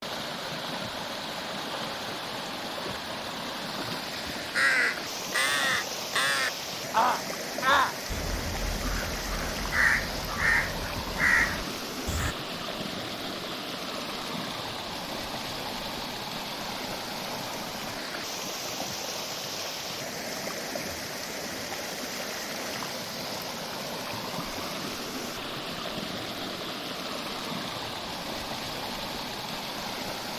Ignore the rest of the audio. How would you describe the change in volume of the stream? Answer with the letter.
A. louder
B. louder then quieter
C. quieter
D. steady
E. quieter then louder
D.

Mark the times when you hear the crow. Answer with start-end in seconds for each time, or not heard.
4.5-12.3.